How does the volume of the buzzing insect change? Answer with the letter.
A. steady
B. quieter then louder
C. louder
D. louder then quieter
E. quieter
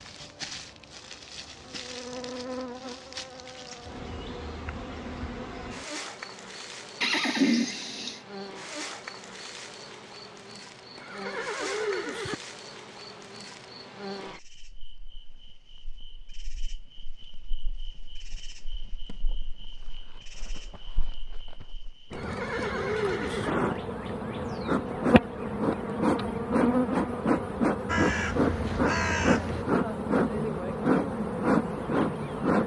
B.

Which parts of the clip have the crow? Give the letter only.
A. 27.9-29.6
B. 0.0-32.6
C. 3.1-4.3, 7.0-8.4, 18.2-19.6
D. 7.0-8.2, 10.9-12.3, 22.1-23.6
A.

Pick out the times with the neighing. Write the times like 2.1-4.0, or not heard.
7.0-8.2, 10.9-12.3, 22.1-23.6.